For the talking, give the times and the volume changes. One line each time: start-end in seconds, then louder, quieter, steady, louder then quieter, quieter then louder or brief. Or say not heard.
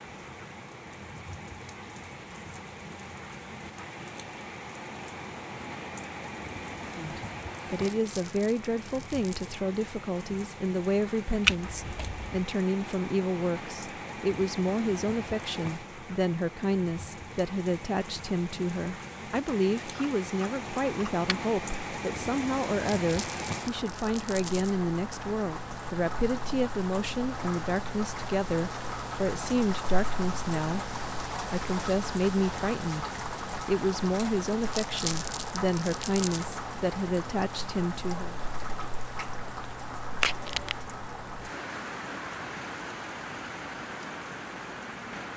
6.8-38.4 steady.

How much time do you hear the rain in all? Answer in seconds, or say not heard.
45 s.